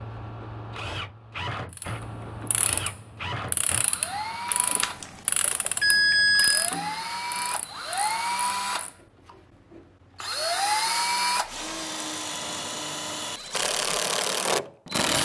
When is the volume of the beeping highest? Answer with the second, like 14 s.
6 s.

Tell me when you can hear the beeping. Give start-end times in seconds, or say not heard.
4.5-6.7.